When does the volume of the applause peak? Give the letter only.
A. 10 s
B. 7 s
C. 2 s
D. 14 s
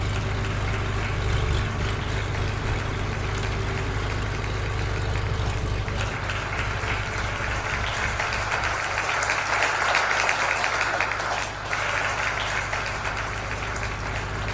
A.